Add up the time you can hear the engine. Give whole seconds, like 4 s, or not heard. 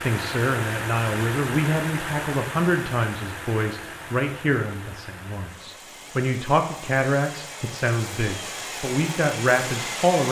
10 s.